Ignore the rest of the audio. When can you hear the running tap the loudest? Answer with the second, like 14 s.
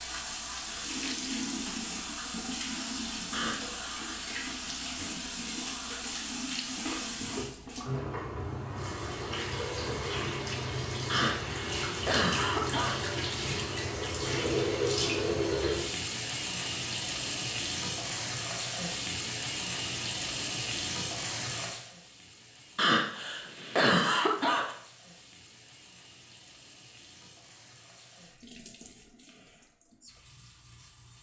15 s.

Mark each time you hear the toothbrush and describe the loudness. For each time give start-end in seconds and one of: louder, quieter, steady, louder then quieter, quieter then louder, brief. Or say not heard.
not heard.